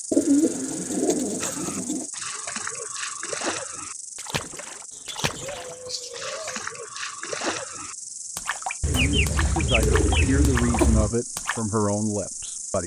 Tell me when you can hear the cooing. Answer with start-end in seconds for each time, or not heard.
0.1-2.0, 4.9-6.7, 8.8-11.2.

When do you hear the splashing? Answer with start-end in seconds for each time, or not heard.
1.4-11.6.